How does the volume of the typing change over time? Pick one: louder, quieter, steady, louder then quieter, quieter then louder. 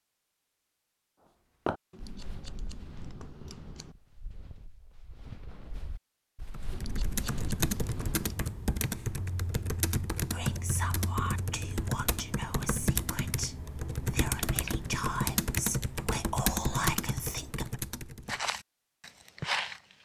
steady.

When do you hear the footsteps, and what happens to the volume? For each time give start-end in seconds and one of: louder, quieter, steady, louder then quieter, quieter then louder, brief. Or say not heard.
1.6-8.3 quieter then louder
18.2-20.0 brief.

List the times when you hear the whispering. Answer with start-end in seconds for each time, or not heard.
10.3-17.8.